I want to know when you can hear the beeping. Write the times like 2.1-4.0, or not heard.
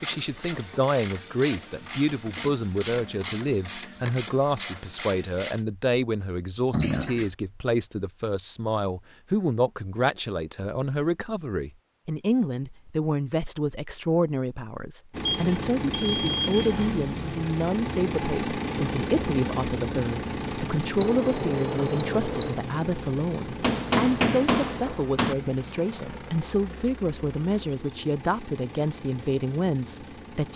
6.7-7.3, 15.2-16.8, 21.0-22.6.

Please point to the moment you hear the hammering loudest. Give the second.
24 s.